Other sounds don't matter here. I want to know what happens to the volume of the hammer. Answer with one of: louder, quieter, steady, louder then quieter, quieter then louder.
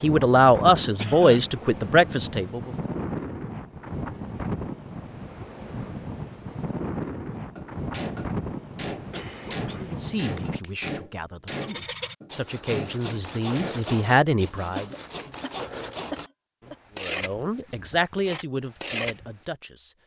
steady.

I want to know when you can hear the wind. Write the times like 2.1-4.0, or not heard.
0.0-10.6.